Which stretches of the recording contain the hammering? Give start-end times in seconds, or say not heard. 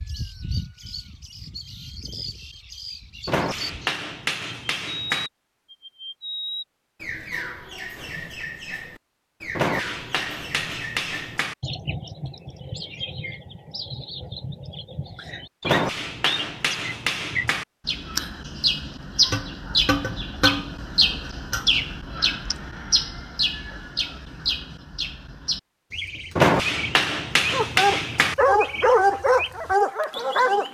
3.2-5.3, 9.6-11.6, 15.6-17.6, 26.4-28.4.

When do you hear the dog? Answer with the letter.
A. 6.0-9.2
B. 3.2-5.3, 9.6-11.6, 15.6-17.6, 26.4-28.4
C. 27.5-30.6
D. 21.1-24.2
C.